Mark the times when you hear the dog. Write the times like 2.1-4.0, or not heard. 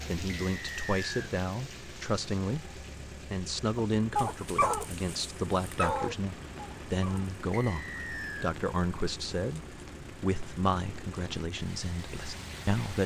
3.8-7.3.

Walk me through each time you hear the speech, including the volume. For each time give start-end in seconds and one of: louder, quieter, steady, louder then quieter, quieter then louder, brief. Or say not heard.
0.1-13.0 steady.